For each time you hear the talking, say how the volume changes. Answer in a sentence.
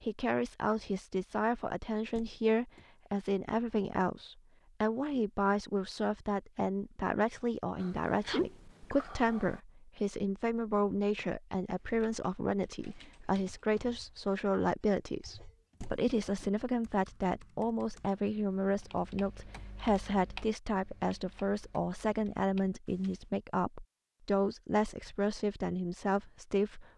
The talking can be heard from 0.0 to 26.9 s, at a steady volume.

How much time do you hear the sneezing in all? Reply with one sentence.
The sneezing can be heard for 2 seconds in total.